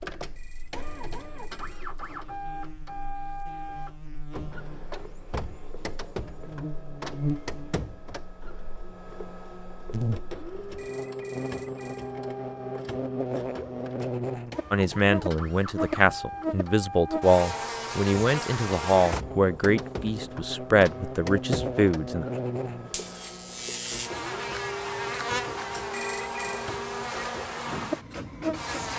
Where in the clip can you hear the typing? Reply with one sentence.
You can't hear the typing here.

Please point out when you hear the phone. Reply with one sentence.
You can hear the phone from 0.3 to 1.9 s, from 10.8 to 12.2 s and from 25.9 to 26.7 s.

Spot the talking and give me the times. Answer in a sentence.
The talking can be heard from 14.7 to 22.2 s.